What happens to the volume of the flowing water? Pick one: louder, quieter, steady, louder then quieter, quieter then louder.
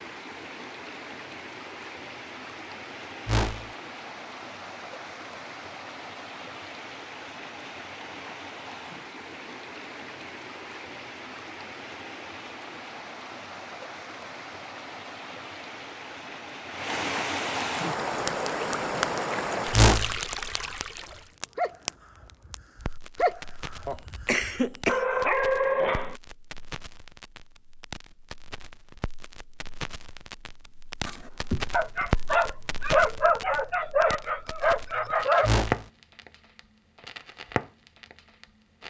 louder.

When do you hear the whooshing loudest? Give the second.
20 s.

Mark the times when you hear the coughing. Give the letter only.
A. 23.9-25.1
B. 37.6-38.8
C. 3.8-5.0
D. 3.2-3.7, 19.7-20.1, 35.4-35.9
A.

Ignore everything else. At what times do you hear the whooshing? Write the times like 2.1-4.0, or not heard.
3.2-3.7, 19.7-20.1, 35.4-35.9.